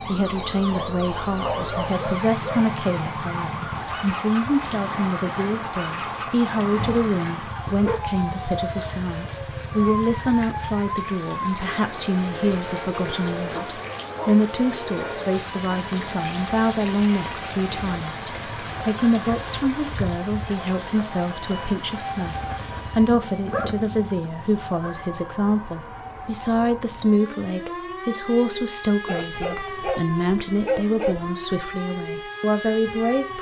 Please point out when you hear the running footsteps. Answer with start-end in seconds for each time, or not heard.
not heard.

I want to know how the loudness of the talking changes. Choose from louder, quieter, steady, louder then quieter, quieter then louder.
steady.